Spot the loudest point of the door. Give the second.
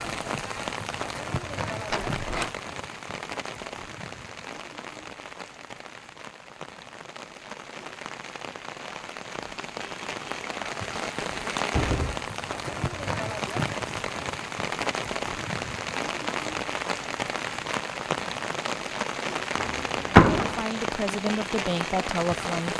20 s.